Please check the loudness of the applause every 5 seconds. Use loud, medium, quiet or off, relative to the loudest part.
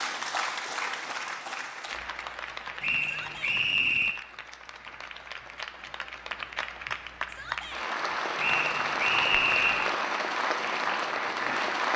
medium, loud, loud.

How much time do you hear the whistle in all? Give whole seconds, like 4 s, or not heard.
3 s.